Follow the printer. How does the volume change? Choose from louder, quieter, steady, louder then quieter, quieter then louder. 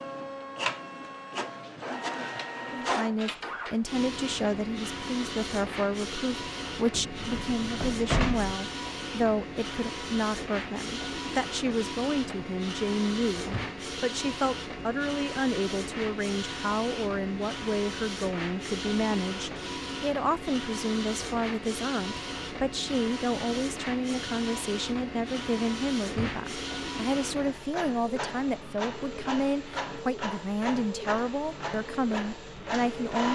steady.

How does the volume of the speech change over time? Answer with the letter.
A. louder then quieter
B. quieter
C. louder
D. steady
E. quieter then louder
D.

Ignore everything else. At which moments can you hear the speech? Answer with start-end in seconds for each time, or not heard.
2.7-33.3.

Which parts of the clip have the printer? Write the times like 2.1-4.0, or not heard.
0.0-33.3.